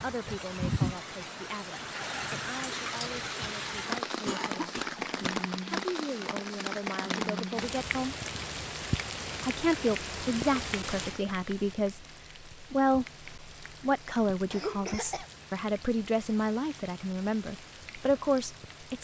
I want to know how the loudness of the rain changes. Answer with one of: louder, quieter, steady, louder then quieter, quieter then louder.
quieter.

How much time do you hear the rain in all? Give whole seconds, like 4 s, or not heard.
19 s.